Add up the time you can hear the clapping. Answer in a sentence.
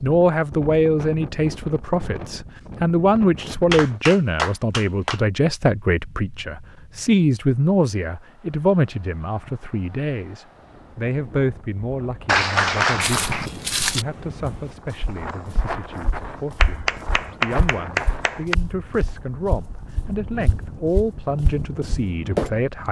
The clapping can be heard for 5 seconds in total.